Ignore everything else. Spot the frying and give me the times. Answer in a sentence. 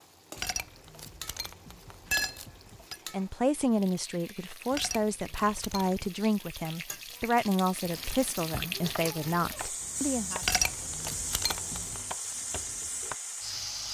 You can hear the frying from 0.0 to 13.8 s.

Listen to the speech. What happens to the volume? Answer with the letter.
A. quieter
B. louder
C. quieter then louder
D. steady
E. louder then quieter
D.